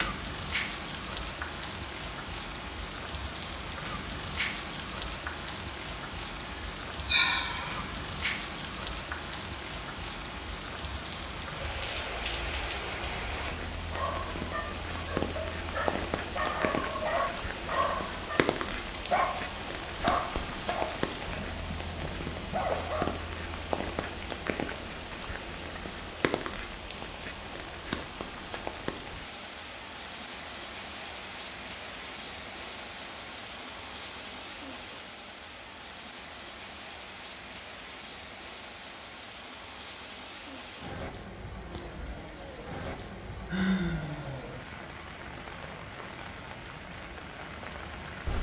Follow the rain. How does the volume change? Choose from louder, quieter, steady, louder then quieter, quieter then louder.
quieter.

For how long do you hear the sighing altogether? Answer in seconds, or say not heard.
3 s.